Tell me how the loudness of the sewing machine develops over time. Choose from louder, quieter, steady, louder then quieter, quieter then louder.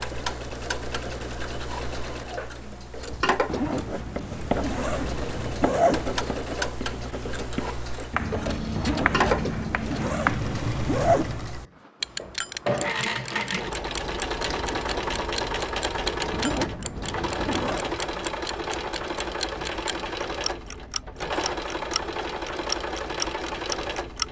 louder.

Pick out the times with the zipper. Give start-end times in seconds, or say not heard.
3.5-6.2, 8.8-11.4, 16.3-17.9.